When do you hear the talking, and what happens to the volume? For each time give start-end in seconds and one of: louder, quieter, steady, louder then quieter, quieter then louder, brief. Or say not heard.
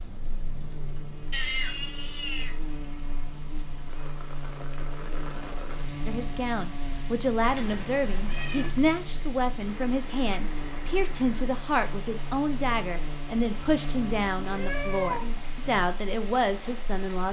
6.0-17.2 steady.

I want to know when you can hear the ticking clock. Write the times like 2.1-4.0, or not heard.
not heard.